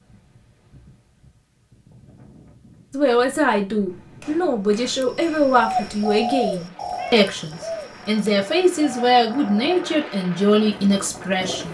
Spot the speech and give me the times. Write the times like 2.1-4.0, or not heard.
2.9-11.6.